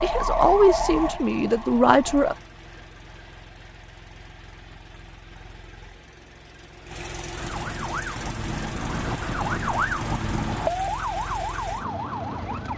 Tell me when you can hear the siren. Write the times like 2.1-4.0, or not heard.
0.0-2.4, 7.3-12.7.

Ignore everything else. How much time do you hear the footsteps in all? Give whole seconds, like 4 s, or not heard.
not heard.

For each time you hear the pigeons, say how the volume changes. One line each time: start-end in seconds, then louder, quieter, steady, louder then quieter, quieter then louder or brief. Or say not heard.
not heard.